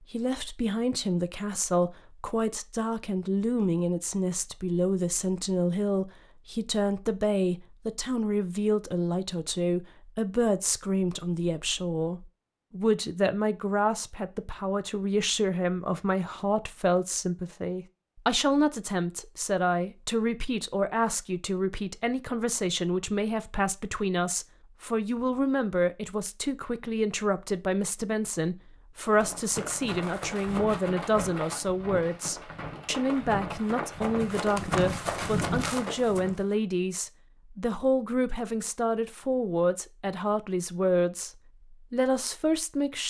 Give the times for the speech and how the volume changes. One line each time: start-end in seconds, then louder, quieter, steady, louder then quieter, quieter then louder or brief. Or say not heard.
0.1-43.0 steady.